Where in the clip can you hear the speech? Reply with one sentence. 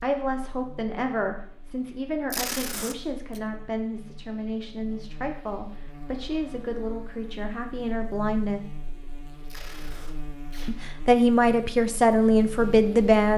You can hear the speech from 0.0 to 8.6 s and from 10.7 to 13.3 s.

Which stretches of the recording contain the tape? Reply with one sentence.
The tape can be heard from 2.3 to 3.4 s and from 9.4 to 10.8 s.